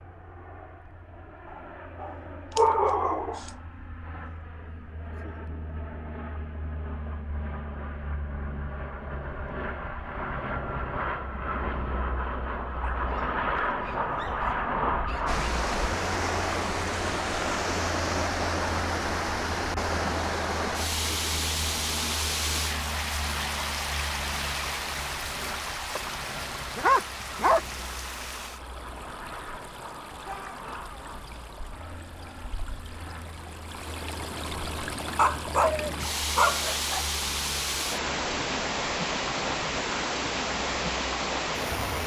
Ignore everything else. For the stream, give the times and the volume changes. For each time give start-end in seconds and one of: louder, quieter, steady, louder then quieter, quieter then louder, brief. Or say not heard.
15.2-42.0 quieter then louder.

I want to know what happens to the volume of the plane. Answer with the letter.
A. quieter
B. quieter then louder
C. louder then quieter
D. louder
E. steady
C.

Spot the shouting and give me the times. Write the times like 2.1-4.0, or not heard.
30.2-31.1.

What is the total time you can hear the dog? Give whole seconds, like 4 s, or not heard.
8 s.